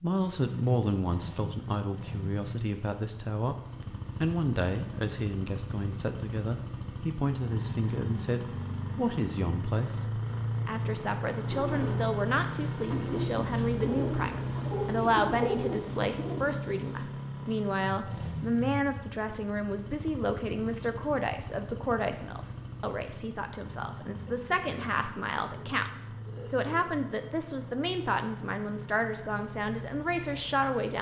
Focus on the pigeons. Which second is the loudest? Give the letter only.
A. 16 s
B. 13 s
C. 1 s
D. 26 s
A.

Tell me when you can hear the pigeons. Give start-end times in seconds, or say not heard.
11.5-17.1.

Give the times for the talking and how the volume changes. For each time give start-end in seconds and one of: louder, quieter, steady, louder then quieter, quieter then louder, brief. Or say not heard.
0.0-30.9 steady.